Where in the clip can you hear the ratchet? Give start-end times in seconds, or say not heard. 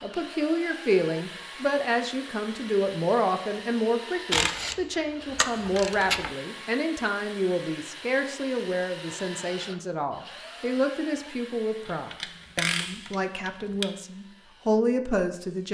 4.3-6.3, 11.8-13.8.